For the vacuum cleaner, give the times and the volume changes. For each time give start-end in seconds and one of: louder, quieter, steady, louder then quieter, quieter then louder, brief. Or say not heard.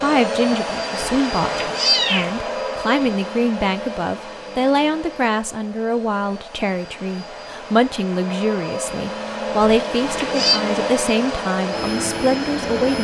0.0-12.9 quieter then louder.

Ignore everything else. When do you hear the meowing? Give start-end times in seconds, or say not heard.
1.0-2.4, 9.6-10.6.